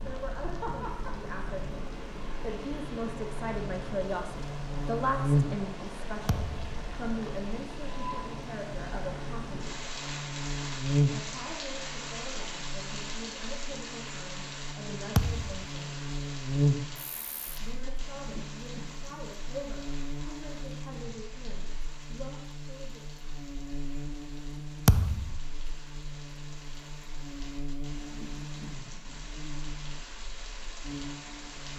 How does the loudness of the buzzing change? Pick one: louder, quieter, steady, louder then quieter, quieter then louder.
quieter.